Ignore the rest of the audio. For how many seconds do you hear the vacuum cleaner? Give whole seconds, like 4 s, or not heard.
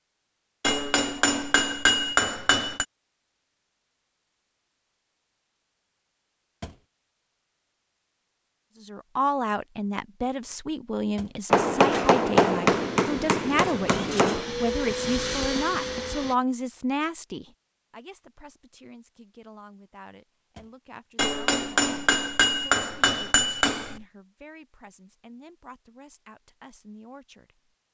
4 s.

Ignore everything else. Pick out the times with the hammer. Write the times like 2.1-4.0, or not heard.
0.6-2.9, 11.5-14.4, 21.1-24.0.